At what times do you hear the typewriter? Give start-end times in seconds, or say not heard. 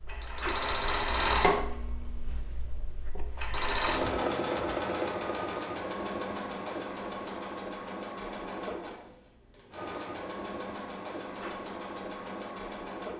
not heard.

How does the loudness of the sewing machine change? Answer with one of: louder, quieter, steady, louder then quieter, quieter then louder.
quieter.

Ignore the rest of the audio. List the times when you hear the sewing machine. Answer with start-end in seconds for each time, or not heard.
0.0-13.1.